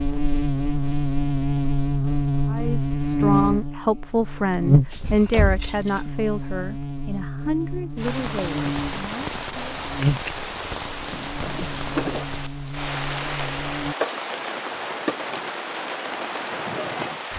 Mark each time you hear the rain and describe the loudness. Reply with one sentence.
You can hear the rain from 8.0 to 17.3 s, at a steady volume.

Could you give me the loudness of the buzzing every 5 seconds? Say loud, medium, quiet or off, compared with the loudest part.
loud, medium, medium, off.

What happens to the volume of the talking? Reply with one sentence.
The volume of the talking goes down.